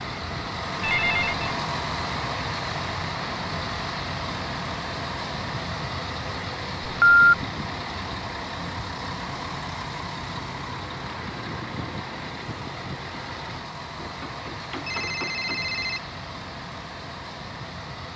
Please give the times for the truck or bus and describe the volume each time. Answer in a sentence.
You can hear the truck or bus from 0.0 to 18.1 s, getting quieter.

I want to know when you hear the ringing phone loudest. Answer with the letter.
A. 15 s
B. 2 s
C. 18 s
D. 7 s
D.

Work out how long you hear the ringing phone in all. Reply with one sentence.
You can hear the ringing phone for 3 seconds altogether.